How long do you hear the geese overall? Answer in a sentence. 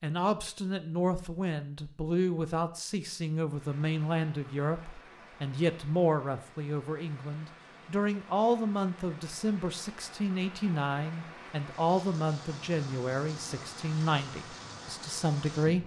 The geese can't be heard in this clip.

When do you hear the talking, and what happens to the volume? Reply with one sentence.
You can hear the talking from 0.0 to 15.8 s, at a steady volume.